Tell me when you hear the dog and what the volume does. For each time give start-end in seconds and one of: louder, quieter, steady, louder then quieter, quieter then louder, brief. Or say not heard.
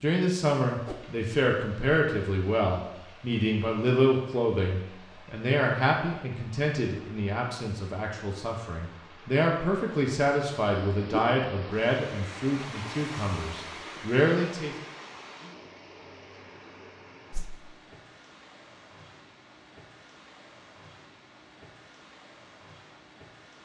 not heard.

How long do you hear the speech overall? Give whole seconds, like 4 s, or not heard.
15 s.